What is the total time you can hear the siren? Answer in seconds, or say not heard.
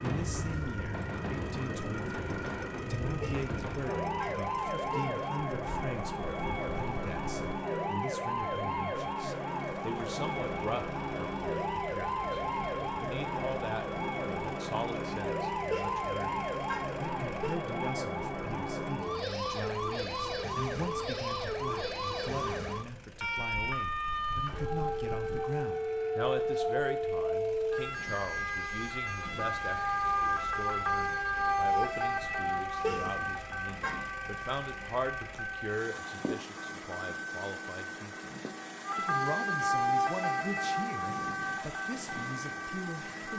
43 s.